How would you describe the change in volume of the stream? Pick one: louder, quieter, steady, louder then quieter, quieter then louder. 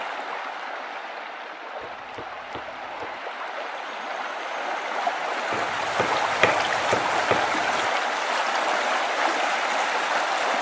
louder.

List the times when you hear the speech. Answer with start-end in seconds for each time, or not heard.
not heard.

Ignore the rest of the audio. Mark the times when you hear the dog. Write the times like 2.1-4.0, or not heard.
not heard.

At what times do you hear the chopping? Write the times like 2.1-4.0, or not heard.
1.8-3.2, 5.5-7.9.